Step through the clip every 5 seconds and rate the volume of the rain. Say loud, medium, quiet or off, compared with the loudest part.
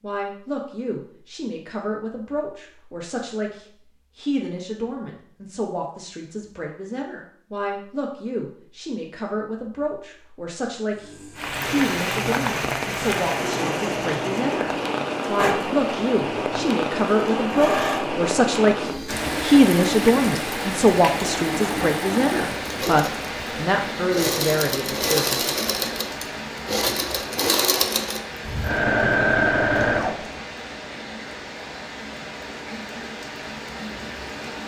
off, off, loud, loud, loud, medium, medium.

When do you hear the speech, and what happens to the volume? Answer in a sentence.
The speech can be heard from 0.0 to 25.6 s, getting louder.